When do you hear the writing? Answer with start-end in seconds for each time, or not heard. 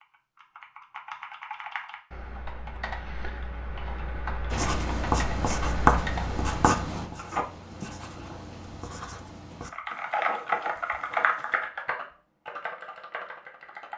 4.5-11.6.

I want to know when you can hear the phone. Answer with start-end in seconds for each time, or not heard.
7.2-7.8.